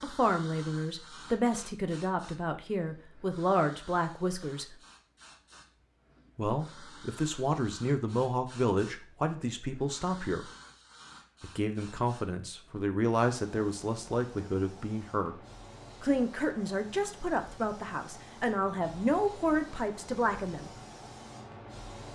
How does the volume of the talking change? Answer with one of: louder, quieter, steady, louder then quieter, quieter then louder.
steady.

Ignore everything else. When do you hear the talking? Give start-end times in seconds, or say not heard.
0.0-4.8, 6.3-10.5, 11.4-15.3, 16.0-20.7.